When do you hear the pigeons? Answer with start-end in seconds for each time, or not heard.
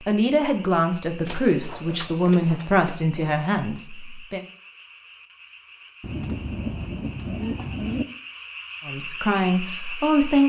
1.2-3.3, 6.0-8.1.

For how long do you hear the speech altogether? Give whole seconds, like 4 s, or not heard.
6 s.